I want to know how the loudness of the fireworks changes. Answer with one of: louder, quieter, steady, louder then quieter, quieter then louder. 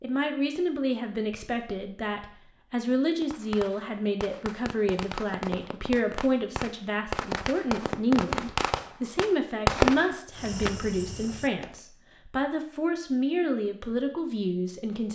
louder.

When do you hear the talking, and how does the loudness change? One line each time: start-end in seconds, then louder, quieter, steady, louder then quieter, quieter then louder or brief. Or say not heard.
0.0-15.1 steady.